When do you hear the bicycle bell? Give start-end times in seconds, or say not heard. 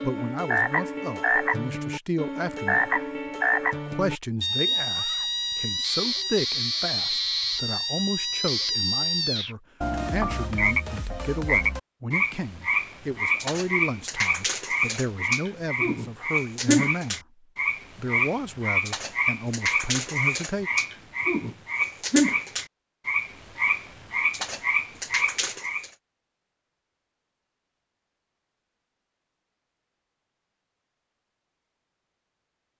not heard.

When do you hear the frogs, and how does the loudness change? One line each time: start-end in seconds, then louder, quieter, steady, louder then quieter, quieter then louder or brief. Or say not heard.
0.0-25.9 steady.